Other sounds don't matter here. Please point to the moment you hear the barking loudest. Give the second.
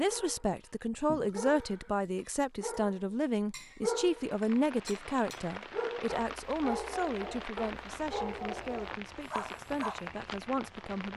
4 s.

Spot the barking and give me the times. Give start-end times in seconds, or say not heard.
0.0-10.0.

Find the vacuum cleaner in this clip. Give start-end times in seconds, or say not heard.
not heard.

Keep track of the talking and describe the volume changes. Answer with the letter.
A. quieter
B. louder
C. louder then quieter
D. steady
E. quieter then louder
A.